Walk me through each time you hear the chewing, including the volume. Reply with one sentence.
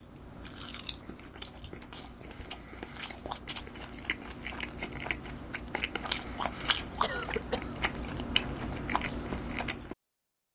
You can hear the chewing from 0.0 to 9.9 s, getting louder.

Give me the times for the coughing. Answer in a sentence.
The coughing can be heard from 7.0 to 7.8 s.